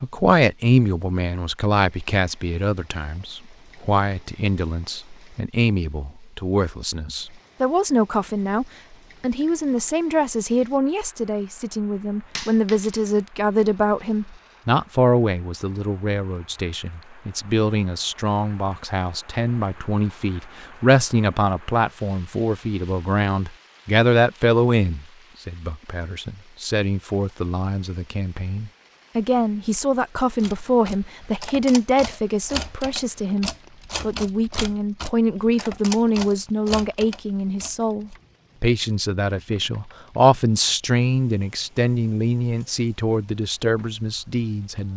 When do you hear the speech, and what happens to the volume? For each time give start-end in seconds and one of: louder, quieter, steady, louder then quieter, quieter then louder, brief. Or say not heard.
0.0-44.9 steady.